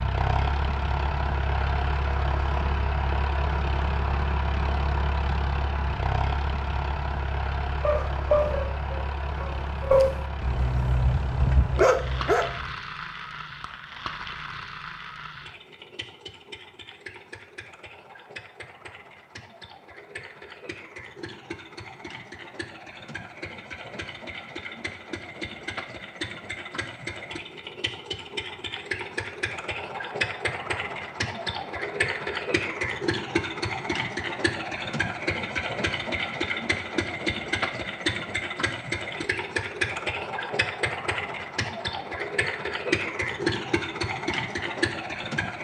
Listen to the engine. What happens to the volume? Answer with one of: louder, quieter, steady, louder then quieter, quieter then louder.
quieter then louder.